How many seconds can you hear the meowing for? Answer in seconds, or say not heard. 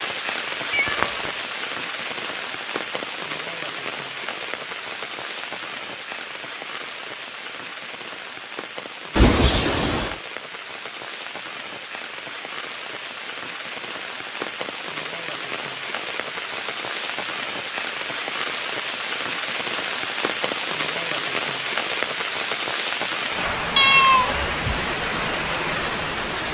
3 s.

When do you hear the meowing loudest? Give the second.
24 s.